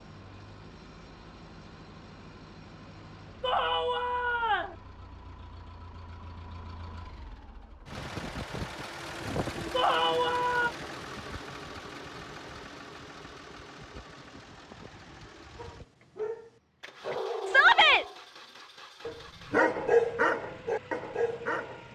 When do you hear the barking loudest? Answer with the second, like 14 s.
20 s.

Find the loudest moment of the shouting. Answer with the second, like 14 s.
18 s.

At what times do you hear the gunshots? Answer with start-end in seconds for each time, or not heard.
not heard.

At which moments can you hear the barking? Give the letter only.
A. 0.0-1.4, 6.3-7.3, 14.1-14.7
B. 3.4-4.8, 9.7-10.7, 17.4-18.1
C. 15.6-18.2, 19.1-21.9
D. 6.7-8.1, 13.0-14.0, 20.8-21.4
C.